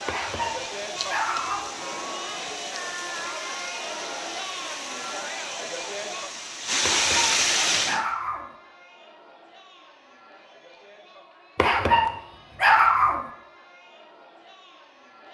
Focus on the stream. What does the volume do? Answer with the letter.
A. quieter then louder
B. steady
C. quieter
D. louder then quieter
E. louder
E.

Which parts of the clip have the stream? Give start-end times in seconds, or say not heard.
0.0-8.1.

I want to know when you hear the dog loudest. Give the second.
13 s.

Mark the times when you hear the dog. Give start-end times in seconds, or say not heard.
0.1-1.8, 6.8-8.5, 11.6-13.2.